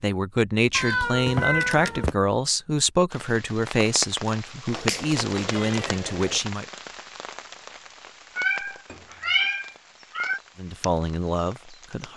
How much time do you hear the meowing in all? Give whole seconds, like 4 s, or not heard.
5 s.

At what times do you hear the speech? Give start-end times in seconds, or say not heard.
0.0-6.7, 10.6-12.1.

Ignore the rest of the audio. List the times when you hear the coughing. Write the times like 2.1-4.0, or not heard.
not heard.